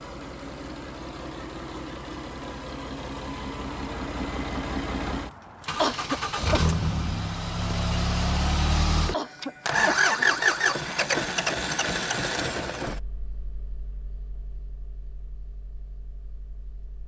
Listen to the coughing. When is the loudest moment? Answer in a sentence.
The volume of the coughing peaks at 6 seconds.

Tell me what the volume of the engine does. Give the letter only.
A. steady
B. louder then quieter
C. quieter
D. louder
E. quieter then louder
B.